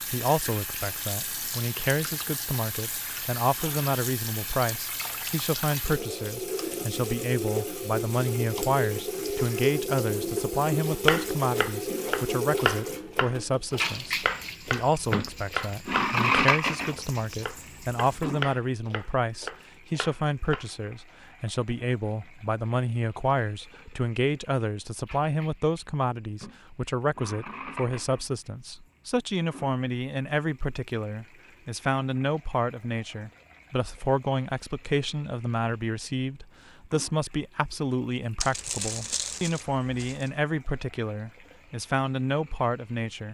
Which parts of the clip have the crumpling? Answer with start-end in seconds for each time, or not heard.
38.4-40.3.